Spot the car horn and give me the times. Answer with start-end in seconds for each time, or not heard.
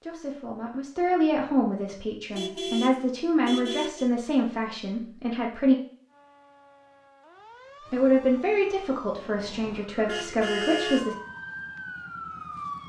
2.3-4.1, 9.7-11.1.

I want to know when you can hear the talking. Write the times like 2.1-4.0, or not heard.
0.0-5.8, 7.9-11.2.